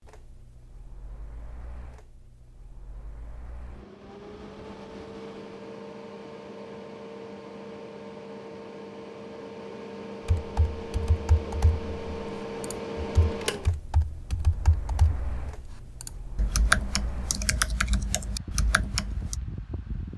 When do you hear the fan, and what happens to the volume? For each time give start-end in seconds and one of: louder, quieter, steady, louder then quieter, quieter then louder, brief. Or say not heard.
0.0-20.1 louder then quieter.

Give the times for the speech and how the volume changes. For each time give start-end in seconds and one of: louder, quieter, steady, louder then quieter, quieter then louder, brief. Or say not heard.
not heard.